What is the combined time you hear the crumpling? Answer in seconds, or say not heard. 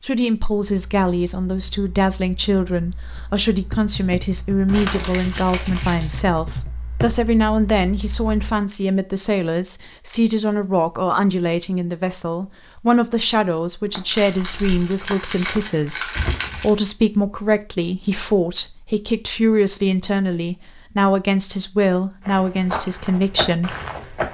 4 s.